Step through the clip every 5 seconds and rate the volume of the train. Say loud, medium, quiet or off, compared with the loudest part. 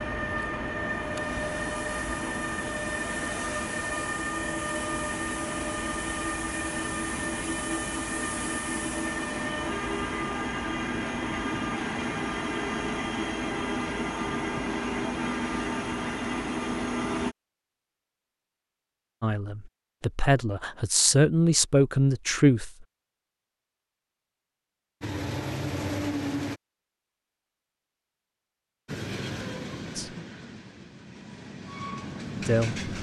loud, loud, loud, loud, off, loud, medium.